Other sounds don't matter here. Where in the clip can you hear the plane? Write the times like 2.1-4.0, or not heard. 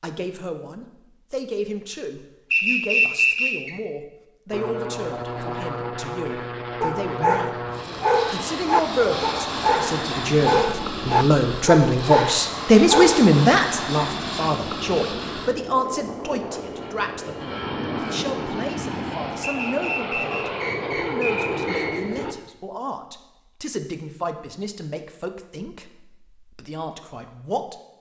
4.5-22.4.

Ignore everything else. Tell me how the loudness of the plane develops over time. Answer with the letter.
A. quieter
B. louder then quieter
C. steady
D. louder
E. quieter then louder
C.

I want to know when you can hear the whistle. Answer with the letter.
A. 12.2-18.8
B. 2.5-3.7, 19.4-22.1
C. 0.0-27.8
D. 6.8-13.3
B.